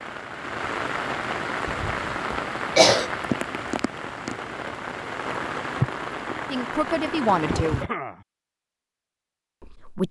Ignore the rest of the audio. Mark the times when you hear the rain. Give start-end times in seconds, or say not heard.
0.0-7.8.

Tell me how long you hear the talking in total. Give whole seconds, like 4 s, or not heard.
2 s.